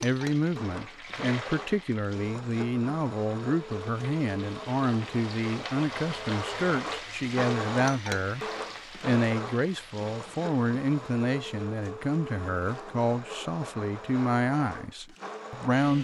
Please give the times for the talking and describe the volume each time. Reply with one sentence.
You can hear the talking from 0.0 to 15.9 s, at a steady volume.